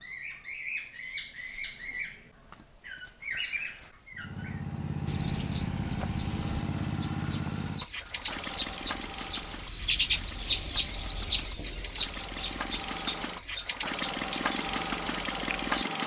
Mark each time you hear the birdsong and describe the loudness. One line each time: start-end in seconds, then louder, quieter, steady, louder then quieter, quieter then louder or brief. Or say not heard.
0.0-15.8 louder then quieter.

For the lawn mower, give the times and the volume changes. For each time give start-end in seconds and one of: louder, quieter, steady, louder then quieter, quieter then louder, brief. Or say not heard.
4.2-16.0 quieter then louder.